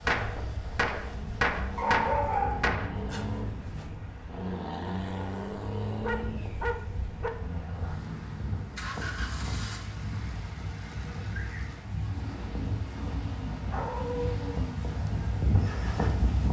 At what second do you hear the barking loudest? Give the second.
2 s.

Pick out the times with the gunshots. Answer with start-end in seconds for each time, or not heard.
0.1-3.0.